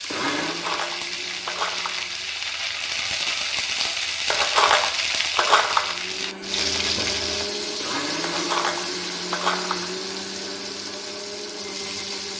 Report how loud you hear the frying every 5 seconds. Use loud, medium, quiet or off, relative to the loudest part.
loud, loud, medium.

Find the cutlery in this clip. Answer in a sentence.
The cutlery can be heard from 0.5 to 2.1 s, from 4.3 to 6.0 s and from 8.2 to 9.9 s.